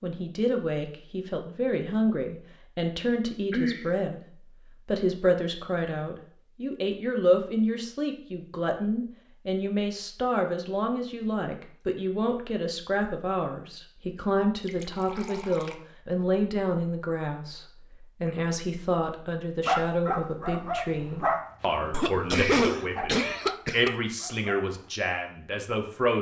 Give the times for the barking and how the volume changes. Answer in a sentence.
You can hear the barking from 19.6 to 24.9 s, getting quieter.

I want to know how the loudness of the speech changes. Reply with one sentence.
The volume of the speech stays about the same.